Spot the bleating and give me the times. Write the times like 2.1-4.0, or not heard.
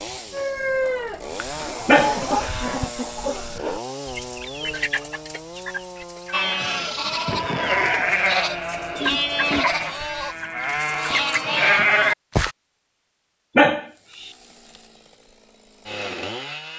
6.3-12.6.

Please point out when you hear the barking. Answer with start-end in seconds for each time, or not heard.
1.9-2.6, 13.6-14.3.